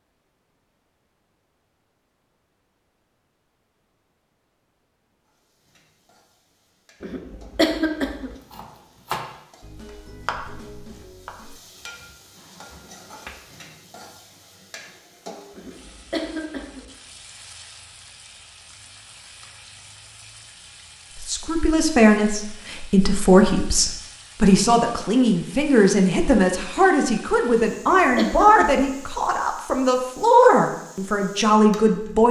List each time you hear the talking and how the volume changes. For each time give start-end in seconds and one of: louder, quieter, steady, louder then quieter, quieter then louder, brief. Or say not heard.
21.2-32.2 steady.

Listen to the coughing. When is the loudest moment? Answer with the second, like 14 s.
8 s.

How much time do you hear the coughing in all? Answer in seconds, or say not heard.
4 s.